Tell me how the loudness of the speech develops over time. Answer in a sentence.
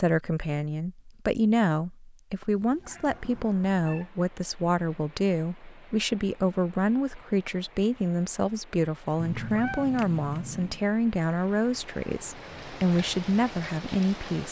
The loudness of the speech stays about the same.